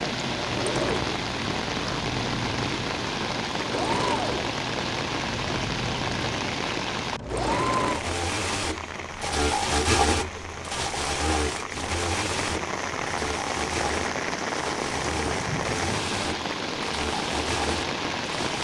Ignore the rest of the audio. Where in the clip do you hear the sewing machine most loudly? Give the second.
10 s.